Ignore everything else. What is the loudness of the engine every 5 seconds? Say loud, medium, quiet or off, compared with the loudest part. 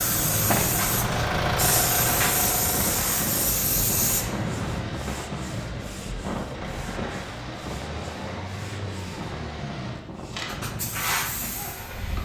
loud, medium, medium.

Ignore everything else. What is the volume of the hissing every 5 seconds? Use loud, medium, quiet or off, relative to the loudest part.
loud, off, loud.